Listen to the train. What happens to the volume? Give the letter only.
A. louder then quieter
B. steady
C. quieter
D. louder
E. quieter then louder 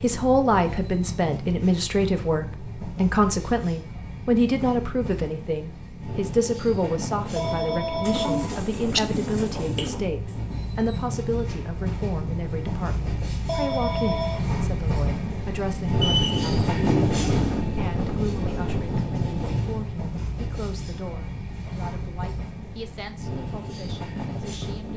A.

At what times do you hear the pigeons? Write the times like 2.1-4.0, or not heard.
8.0-10.0, 16.0-17.6.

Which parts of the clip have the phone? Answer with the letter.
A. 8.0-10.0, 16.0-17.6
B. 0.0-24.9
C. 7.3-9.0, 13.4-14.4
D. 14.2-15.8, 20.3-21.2
C.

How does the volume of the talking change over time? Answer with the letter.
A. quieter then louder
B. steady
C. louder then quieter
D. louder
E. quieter
E.